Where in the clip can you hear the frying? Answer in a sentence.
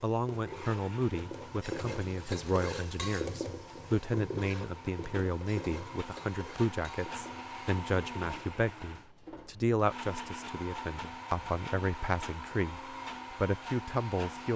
The frying can be heard from 0.0 to 8.6 s.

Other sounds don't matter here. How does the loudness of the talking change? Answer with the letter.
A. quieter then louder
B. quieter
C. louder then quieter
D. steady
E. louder
D.